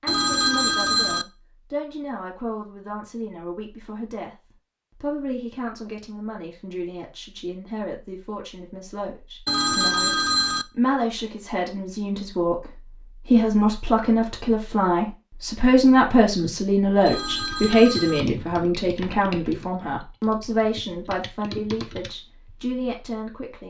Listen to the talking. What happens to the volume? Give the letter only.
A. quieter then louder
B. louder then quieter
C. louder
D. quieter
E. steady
B.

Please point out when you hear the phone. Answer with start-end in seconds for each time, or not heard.
0.1-1.2, 9.4-10.7, 17.1-18.2.